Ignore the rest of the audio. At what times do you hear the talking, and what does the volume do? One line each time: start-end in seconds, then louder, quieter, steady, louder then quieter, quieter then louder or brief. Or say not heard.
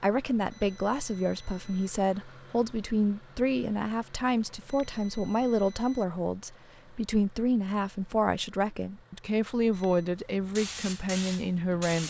0.0-12.0 steady.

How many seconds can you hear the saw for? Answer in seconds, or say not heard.
not heard.